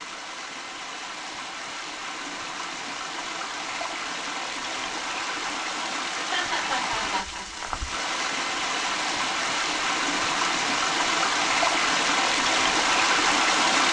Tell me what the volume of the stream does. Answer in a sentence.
The volume of the stream goes up.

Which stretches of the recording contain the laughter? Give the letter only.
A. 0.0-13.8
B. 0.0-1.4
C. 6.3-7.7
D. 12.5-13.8
C.